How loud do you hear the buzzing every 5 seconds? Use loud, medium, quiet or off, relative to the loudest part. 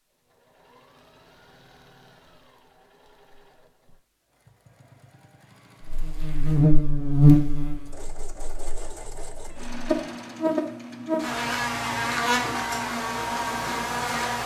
off, loud, medium.